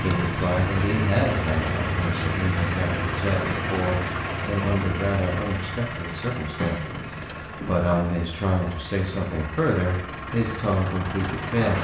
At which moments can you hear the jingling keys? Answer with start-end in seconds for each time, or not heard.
0.1-0.7, 6.6-8.0.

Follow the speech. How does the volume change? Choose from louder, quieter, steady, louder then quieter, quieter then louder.
steady.